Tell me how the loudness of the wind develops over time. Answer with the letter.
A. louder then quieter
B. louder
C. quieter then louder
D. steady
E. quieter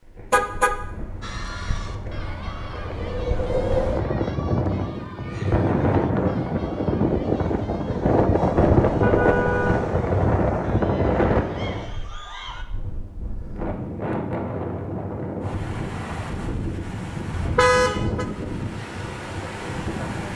A.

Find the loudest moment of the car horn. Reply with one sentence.
The volume of the car horn peaks at 18 seconds.